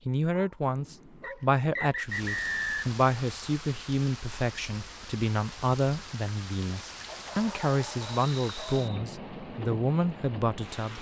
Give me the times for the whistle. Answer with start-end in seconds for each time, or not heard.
1.2-2.9, 8.1-9.1.